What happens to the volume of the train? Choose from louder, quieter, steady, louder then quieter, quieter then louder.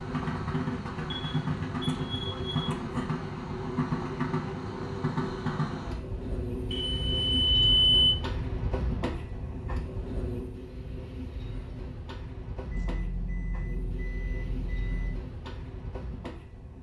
quieter.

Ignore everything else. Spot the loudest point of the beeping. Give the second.
8 s.